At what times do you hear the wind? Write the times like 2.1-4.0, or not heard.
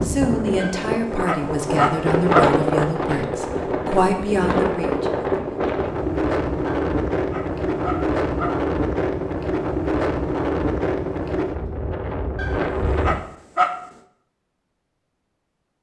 0.0-13.2.